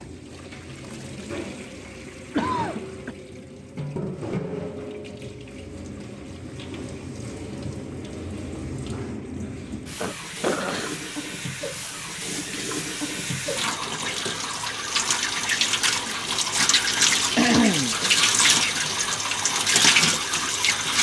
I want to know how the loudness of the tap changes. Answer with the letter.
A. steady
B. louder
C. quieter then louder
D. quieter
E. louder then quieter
B.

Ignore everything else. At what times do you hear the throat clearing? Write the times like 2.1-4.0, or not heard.
2.3-3.1, 10.0-10.9, 17.4-17.9.